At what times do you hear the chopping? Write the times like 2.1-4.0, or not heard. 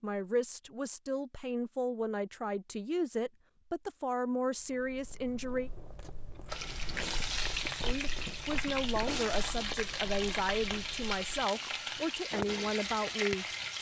not heard.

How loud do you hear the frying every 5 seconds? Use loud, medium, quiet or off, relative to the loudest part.
off, loud, loud.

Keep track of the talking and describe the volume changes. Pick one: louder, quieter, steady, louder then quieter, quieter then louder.
steady.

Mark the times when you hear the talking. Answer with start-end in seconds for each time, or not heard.
0.0-5.7, 7.8-13.4.